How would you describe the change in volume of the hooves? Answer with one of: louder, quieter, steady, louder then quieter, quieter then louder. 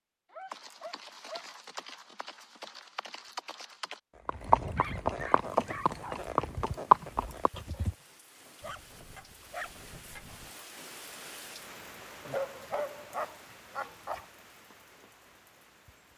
louder.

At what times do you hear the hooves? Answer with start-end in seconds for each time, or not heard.
0.5-8.0.